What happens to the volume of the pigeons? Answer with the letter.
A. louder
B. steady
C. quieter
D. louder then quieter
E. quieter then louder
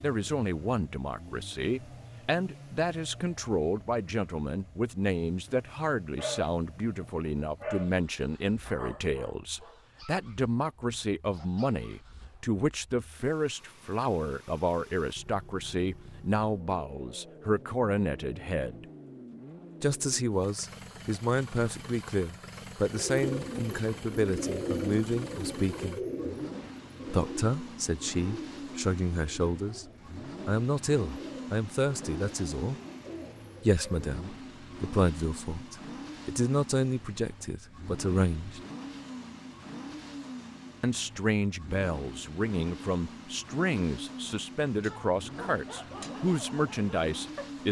C.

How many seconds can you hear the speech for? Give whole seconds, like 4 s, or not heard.
42 s.